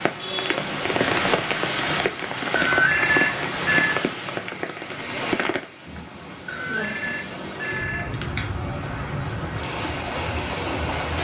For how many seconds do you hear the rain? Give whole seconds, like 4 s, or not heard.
11 s.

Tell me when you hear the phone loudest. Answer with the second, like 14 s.
3 s.